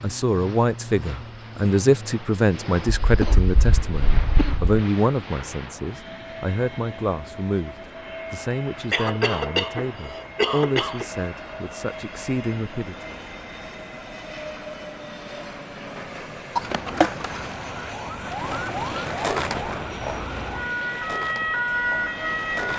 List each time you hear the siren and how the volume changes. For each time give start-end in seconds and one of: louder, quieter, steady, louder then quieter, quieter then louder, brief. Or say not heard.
16.5-22.7 louder.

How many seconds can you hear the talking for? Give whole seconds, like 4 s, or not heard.
13 s.